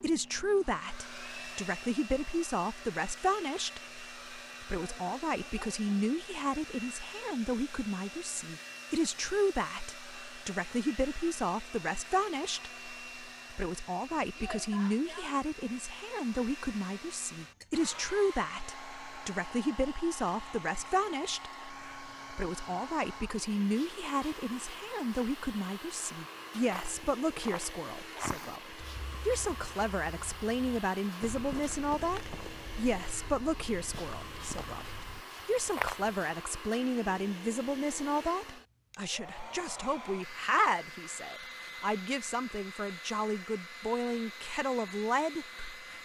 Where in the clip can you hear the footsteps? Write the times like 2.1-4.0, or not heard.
26.7-36.1.